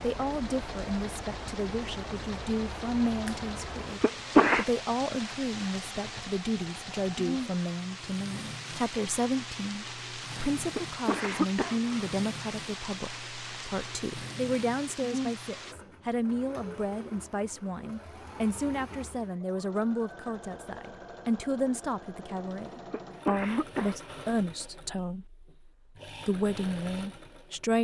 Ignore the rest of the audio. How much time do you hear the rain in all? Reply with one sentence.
You can hear the rain for 16 seconds altogether.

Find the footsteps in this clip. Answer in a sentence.
You can't hear the footsteps here.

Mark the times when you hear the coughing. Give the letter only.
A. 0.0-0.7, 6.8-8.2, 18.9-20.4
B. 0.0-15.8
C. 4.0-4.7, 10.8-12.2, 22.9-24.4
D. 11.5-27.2
C.